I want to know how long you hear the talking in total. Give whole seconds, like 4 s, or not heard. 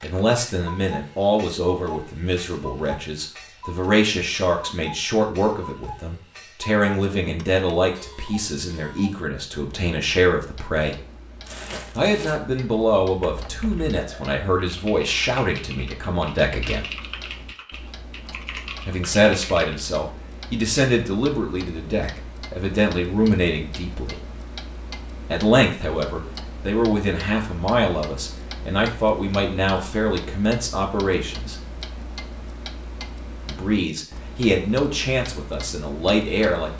31 s.